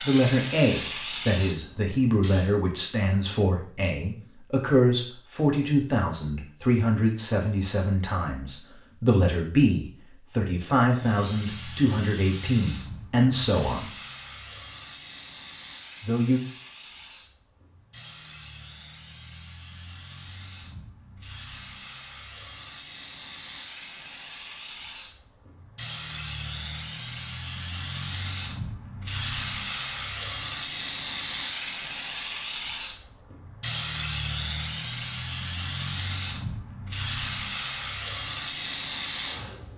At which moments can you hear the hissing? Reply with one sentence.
The hissing can be heard from 0.0 to 2.5 s and from 10.9 to 39.7 s.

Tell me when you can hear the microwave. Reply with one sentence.
You can't hear the microwave here.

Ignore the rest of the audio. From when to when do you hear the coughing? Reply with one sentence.
You can't hear the coughing here.